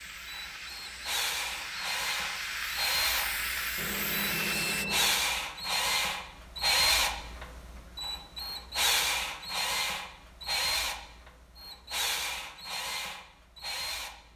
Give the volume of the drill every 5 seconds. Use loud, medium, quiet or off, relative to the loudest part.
medium, loud, medium.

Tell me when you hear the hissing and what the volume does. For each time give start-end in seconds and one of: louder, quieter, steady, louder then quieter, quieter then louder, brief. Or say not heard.
0.0-4.8 louder.